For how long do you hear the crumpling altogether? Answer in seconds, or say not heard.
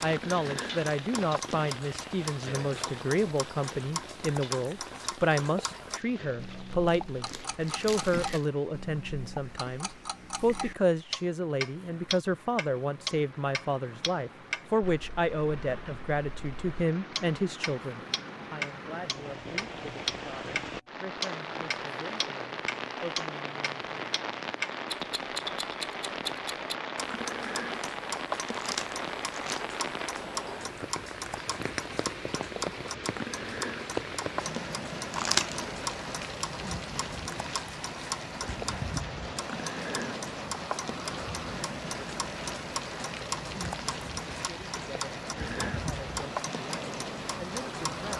3 s.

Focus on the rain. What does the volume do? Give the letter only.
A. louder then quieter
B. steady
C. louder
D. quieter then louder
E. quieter
C.